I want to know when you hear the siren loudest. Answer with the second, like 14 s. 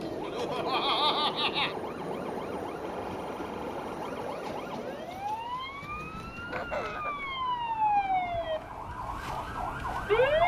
10 s.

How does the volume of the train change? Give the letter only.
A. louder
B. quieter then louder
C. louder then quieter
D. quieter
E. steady
D.